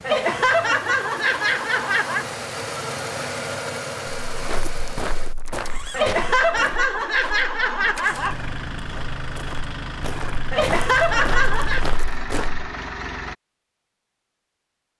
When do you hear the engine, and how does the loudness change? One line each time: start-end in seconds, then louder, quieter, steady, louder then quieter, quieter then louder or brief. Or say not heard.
0.0-6.0 louder then quieter
7.9-13.3 steady.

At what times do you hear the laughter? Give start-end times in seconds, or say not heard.
0.0-2.3, 5.9-8.3, 10.5-11.8.